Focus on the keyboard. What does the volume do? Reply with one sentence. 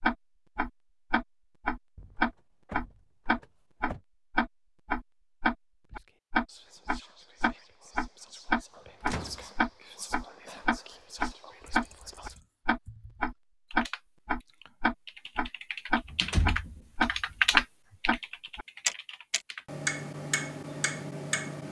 The volume of the keyboard goes up, then down.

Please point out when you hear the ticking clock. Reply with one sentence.
The ticking clock can be heard from 0.0 to 21.6 s.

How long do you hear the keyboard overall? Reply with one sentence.
The keyboard can be heard for 8 seconds in total.